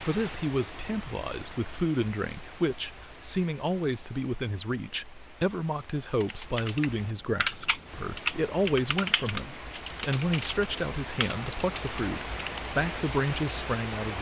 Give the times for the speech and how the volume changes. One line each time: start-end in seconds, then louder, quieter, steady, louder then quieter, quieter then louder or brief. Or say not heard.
0.0-14.1 steady.